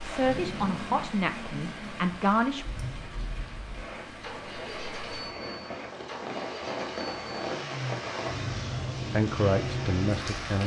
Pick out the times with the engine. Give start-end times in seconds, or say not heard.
0.0-10.6.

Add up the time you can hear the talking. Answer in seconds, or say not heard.
4 s.